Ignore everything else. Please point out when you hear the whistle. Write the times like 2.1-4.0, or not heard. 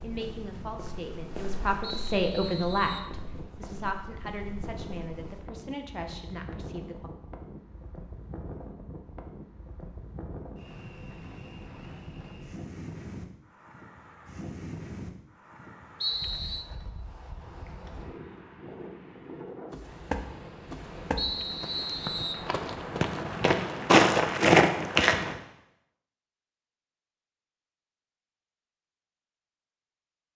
1.8-3.1, 16.0-16.6, 21.1-22.4.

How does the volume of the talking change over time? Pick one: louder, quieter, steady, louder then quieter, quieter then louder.
louder then quieter.